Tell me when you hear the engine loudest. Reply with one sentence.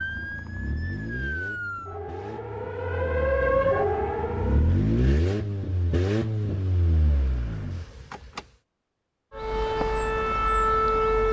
The volume of the engine peaks at 5 seconds.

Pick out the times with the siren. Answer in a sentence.
You can hear the siren from 0.0 to 4.8 s and from 9.3 to 11.2 s.